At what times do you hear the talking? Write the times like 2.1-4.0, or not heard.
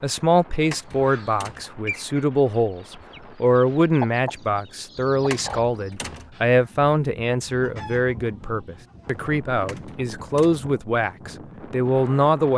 0.0-12.5.